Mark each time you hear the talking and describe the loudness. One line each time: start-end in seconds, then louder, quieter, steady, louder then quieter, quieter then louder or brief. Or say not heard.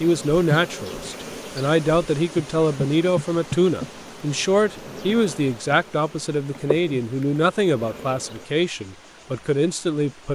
0.0-10.3 steady.